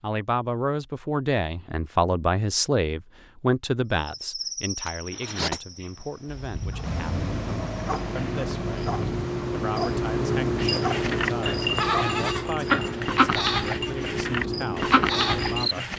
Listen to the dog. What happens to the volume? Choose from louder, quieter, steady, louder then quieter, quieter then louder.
louder.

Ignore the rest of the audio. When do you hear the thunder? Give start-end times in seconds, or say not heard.
6.2-9.2.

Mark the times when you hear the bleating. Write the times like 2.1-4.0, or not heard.
10.6-15.9.